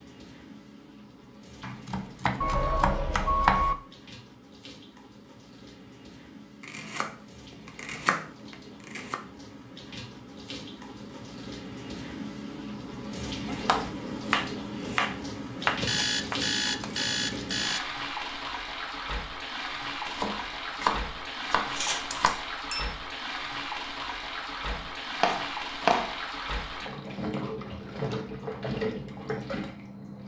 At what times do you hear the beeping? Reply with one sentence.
You can hear the beeping from 2.4 to 3.8 s, from 15.8 to 17.8 s and from 22.1 to 22.9 s.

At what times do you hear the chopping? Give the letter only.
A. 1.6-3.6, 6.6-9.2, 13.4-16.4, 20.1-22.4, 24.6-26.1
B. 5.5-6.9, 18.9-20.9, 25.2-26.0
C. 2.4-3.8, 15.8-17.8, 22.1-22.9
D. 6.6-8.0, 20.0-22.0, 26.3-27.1
A.